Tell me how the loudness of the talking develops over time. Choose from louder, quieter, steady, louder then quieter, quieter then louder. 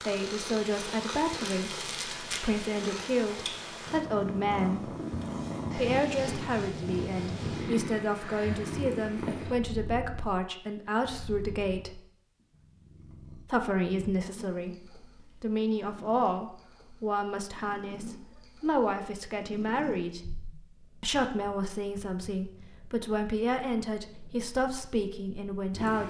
steady.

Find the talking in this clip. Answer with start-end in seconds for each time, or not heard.
0.1-5.0, 5.7-12.0, 13.4-20.2, 21.0-26.0.